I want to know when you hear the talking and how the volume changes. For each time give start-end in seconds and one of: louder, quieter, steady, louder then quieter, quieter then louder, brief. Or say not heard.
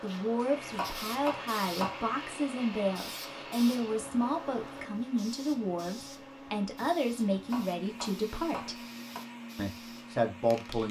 0.0-8.8 steady
9.6-10.8 brief.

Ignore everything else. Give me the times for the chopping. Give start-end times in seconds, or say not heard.
0.7-2.0, 7.4-9.2.